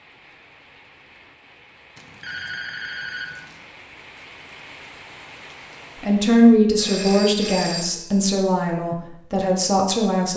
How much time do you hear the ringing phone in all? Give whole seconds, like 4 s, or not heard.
3 s.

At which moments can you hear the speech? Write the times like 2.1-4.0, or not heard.
6.0-10.3.